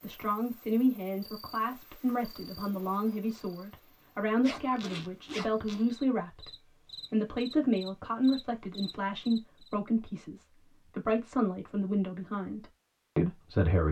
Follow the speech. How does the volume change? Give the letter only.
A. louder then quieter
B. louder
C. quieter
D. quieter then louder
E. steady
E.